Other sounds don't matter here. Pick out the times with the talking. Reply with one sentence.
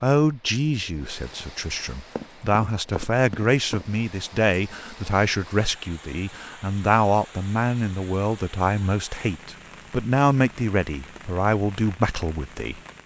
The talking can be heard from 0.0 to 12.8 s.